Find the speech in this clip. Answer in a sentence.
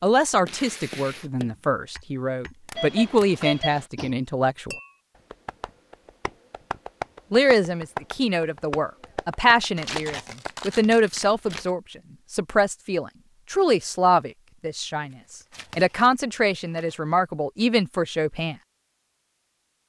The speech can be heard from 0.0 to 4.8 s, from 7.3 to 15.2 s and from 15.8 to 18.6 s.